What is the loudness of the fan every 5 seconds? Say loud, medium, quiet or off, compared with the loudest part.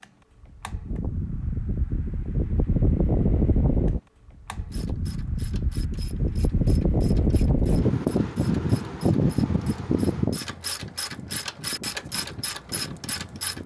loud, loud, medium.